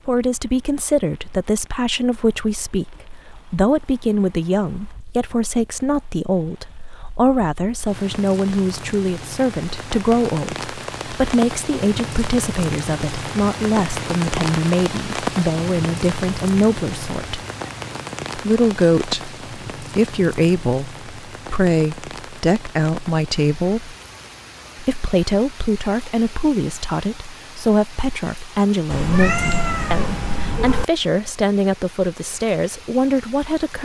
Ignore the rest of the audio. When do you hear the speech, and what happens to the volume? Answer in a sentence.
The speech can be heard from 0.1 to 17.4 s, at a steady volume; from 18.4 to 23.9 s, at a steady volume; and from 24.8 to 33.8 s, at a steady volume.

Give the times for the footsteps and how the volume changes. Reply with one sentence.
You can't hear the footsteps here.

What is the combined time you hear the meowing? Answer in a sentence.
The meowing can be heard for 2 seconds in total.